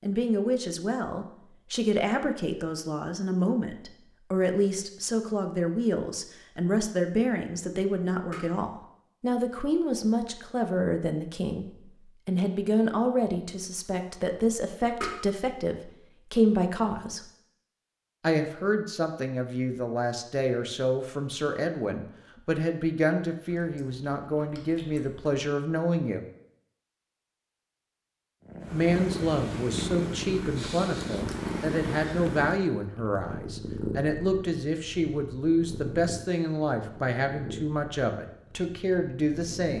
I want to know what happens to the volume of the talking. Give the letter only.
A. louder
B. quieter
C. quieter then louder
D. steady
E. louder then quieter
D.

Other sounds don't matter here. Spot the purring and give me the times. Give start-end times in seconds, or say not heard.
28.4-39.7.